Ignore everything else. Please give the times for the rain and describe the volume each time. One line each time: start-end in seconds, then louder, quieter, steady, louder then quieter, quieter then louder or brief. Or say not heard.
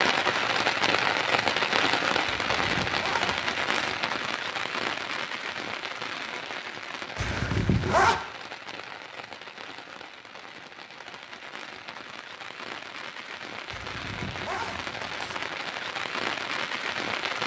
0.0-17.4 quieter then louder.